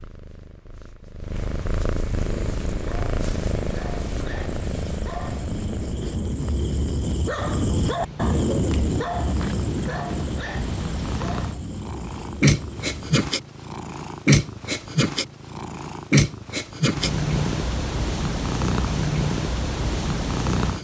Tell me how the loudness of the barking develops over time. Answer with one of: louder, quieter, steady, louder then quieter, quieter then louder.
louder then quieter.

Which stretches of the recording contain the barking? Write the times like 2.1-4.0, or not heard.
2.2-13.2.